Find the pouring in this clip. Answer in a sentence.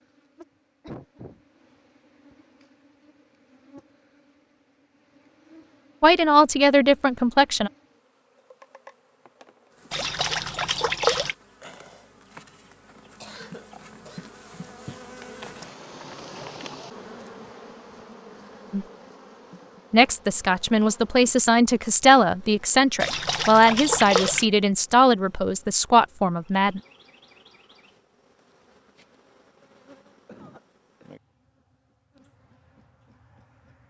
The pouring can be heard from 9.9 to 11.3 s and from 23.0 to 24.4 s.